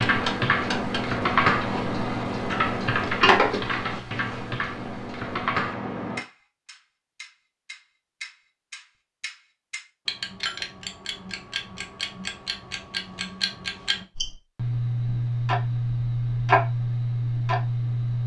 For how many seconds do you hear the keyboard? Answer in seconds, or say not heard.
6 s.